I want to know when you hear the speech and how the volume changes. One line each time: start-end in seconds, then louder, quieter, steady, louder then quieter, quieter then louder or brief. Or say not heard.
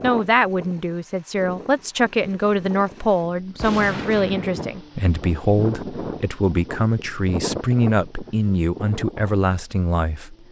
0.0-10.3 steady.